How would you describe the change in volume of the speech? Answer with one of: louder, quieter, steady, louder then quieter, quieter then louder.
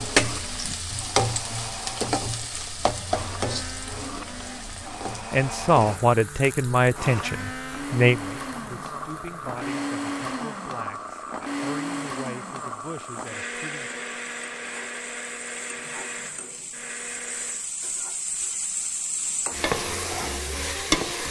quieter.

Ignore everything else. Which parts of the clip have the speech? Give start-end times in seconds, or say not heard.
5.3-13.9.